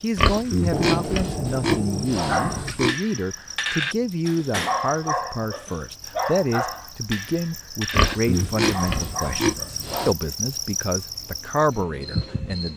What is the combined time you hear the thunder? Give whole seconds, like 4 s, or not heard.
2 s.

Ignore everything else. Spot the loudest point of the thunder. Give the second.
1 s.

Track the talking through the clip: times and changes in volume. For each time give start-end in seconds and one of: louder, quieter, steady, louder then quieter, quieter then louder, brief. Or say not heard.
0.0-12.7 steady.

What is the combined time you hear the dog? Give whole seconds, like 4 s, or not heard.
8 s.